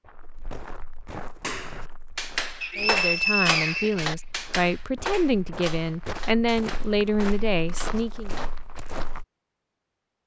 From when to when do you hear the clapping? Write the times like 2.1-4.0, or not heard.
1.4-8.8.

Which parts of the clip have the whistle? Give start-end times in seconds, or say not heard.
2.6-4.5.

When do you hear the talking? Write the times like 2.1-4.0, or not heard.
2.8-8.3.